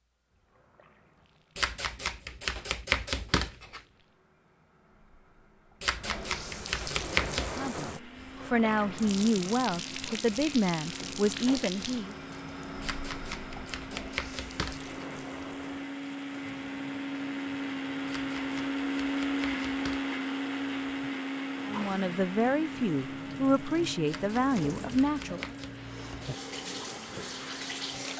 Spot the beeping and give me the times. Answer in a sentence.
You can't hear the beeping here.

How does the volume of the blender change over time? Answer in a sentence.
The volume of the blender goes up, then down.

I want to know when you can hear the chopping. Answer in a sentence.
The chopping can be heard from 1.6 to 3.8 s, from 5.8 to 7.5 s, from 12.8 to 14.9 s, from 18.1 to 20.1 s and from 24.1 to 25.8 s.